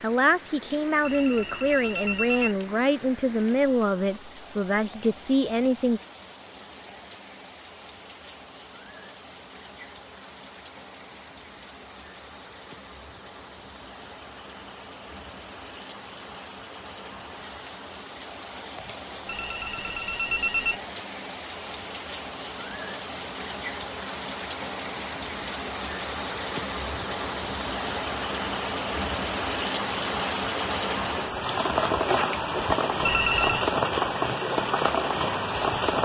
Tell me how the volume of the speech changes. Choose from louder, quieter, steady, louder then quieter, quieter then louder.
steady.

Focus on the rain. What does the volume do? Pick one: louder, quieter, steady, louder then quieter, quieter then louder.
louder.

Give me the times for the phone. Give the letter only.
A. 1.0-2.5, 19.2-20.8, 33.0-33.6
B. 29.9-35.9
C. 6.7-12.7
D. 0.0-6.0
A.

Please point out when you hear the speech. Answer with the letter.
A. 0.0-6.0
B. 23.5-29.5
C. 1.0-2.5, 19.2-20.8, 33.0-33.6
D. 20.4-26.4
A.